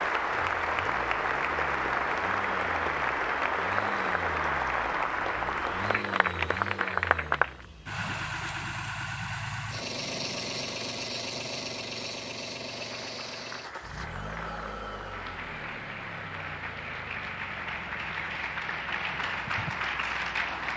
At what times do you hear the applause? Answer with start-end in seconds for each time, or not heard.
0.0-7.7, 12.8-20.7.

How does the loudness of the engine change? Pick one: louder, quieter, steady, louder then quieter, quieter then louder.
louder then quieter.